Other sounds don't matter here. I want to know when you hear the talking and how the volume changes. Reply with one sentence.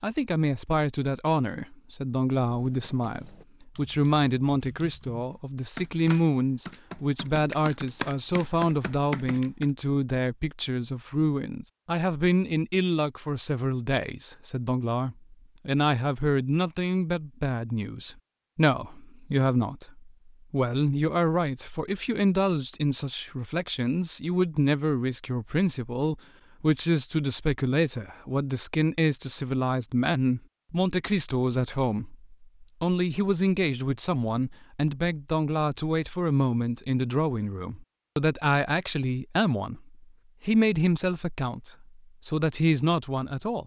The talking can be heard from 0.0 to 43.6 s, at a steady volume.